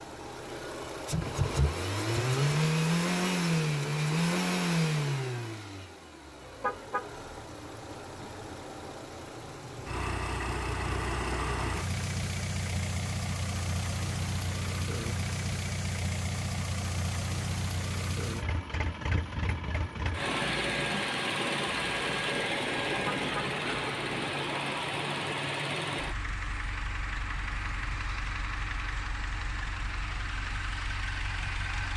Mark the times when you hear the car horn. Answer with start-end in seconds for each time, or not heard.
6.6-7.0, 23.1-23.5.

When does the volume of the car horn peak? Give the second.
7 s.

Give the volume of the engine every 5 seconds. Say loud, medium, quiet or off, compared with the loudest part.
loud, medium, medium, medium, loud, medium, medium.